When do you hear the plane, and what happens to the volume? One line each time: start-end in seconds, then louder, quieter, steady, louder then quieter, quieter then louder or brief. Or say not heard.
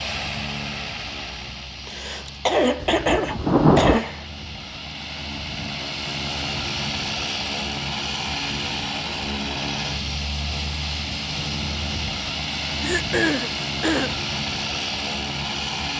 0.0-15.9 louder.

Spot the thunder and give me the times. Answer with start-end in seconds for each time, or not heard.
2.8-4.0.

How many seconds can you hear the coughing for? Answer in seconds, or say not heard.
4 s.